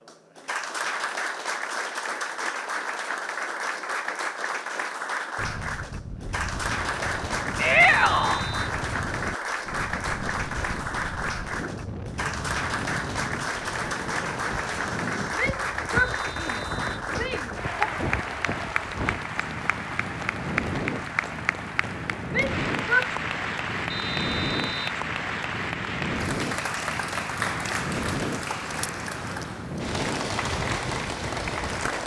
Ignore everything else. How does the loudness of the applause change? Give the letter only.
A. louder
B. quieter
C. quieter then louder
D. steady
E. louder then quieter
D.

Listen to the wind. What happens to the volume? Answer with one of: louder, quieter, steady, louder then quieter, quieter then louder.
steady.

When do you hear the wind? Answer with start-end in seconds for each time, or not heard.
5.3-32.0.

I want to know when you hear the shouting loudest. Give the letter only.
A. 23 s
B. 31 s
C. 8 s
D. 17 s
C.